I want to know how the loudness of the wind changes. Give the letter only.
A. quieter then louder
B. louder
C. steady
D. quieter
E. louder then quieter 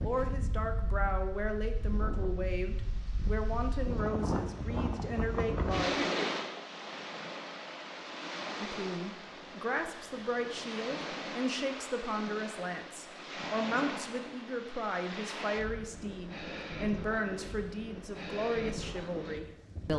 E.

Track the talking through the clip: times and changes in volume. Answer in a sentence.
The talking can be heard from 0.0 to 6.0 s, at a steady volume; and from 8.6 to 19.9 s, at a steady volume.